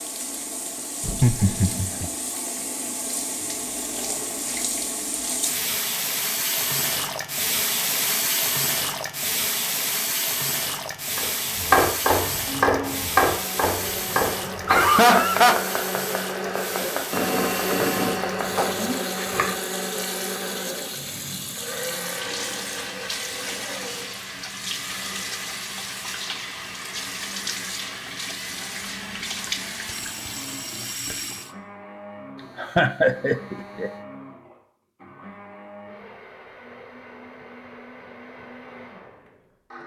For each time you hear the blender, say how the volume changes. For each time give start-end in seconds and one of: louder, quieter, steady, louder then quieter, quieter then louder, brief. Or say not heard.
12.4-39.8 quieter.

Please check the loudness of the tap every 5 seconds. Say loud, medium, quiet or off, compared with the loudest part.
medium, loud, loud, medium, medium, medium, medium, off.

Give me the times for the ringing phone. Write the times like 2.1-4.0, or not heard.
17.1-19.0.